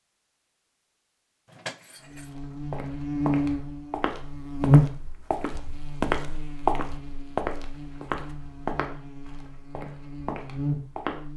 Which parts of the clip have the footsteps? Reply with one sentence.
The footsteps can be heard from 2.2 to 11.2 s.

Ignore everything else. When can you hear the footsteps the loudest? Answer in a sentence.
The loudest moment of the footsteps is at 7 seconds.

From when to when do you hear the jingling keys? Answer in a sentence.
The jingling keys can be heard from 1.4 to 2.4 s.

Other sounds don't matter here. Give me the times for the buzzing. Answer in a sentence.
You can hear the buzzing from 2.0 to 11.3 s.